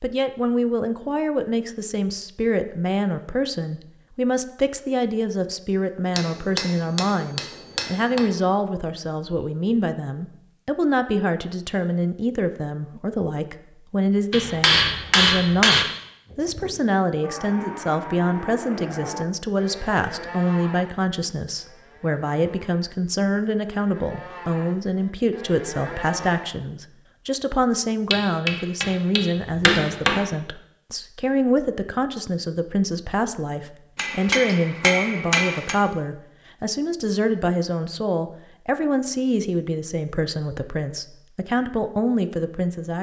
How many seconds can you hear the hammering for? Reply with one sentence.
You can hear the hammering for 8 seconds altogether.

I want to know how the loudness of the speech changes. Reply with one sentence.
The loudness of the speech stays about the same.